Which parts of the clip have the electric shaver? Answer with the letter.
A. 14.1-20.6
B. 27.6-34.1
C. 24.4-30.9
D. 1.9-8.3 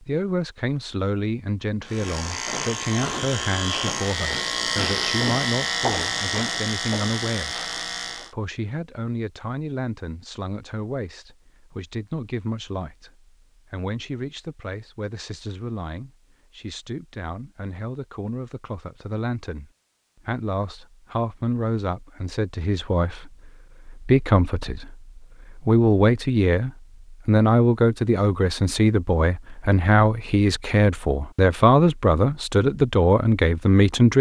D.